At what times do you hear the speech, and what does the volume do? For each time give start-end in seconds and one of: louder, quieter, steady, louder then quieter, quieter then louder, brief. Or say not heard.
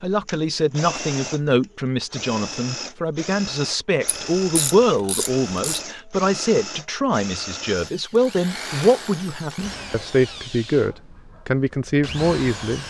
0.0-12.8 steady.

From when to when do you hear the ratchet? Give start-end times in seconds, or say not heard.
4.0-5.8.